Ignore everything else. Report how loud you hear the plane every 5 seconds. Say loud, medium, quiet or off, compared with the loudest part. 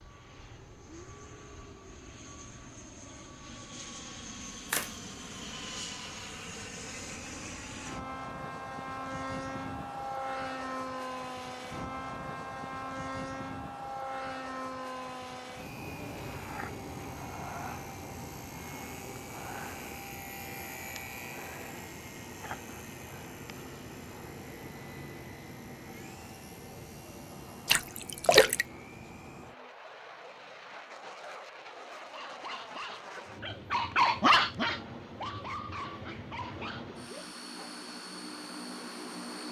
medium, loud, loud, loud, medium, medium, medium, medium.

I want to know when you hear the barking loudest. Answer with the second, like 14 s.
34 s.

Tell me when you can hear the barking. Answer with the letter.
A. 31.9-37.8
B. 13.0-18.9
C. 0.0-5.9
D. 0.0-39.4
A.